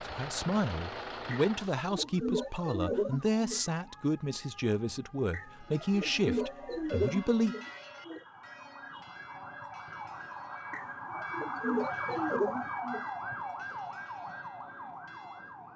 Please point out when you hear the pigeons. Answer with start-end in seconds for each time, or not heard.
1.3-3.6, 5.3-8.2, 10.7-13.1.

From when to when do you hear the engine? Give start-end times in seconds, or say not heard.
0.0-1.8.